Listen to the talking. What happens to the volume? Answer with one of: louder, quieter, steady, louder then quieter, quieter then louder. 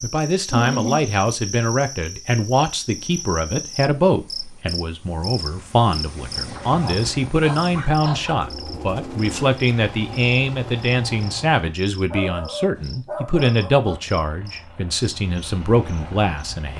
steady.